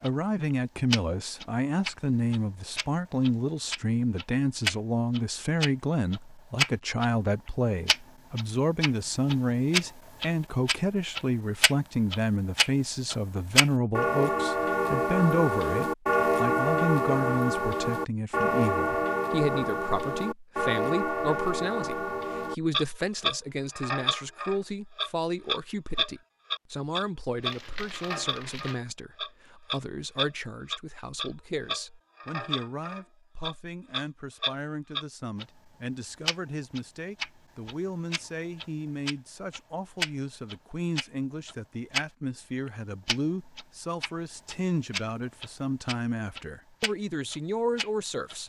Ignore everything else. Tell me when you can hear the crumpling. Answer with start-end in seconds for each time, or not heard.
27.4-28.8.